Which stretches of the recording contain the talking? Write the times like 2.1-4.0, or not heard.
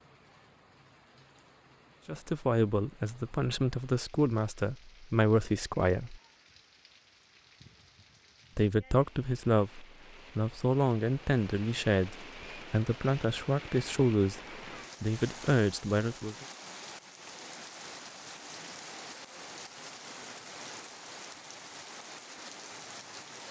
2.0-6.2, 8.6-14.4, 15.0-16.4.